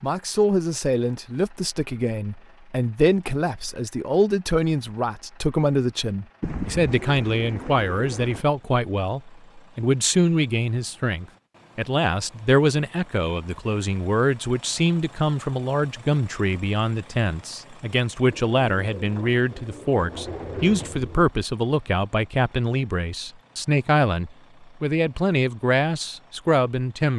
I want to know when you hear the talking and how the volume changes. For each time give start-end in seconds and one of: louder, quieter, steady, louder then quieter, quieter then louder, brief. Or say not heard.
0.0-27.1 steady.